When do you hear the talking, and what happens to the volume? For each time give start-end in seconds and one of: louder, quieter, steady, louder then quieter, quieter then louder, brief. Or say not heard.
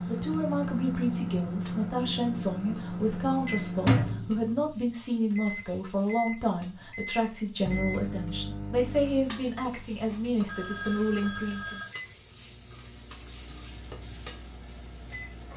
0.0-11.8 steady.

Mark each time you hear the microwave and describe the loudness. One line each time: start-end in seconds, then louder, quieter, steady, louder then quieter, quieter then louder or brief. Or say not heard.
0.0-15.5 quieter.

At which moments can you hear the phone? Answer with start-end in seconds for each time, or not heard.
10.4-11.9.